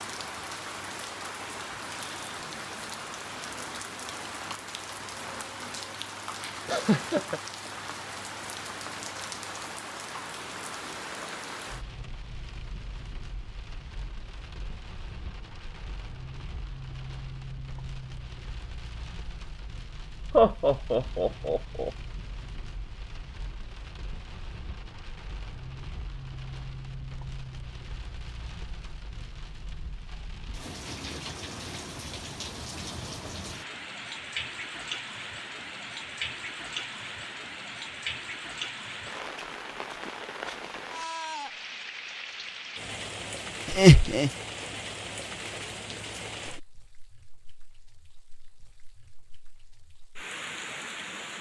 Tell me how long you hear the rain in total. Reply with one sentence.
You can hear the rain for 51 seconds altogether.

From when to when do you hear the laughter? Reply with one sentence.
You can hear the laughter from 6.7 to 7.4 s, from 20.3 to 21.9 s and from 43.6 to 44.3 s.